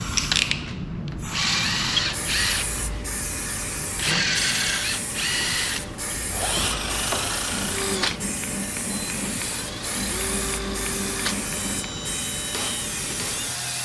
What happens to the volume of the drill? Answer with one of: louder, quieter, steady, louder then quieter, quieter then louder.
quieter.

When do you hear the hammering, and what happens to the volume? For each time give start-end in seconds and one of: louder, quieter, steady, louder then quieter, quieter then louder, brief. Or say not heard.
6.9-13.4 steady.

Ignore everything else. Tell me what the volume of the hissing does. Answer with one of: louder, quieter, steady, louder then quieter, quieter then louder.
steady.